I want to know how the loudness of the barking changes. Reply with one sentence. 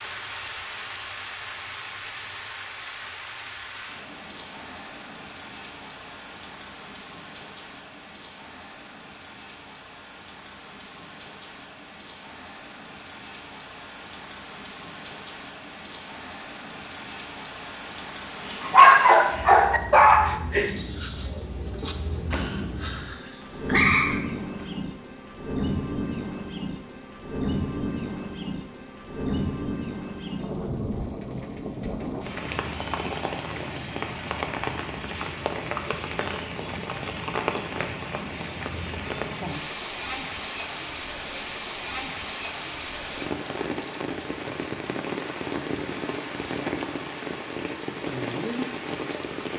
The loudness of the barking goes down, then up.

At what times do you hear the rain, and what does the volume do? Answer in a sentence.
You can hear the rain from 0.0 to 49.5 s, getting louder.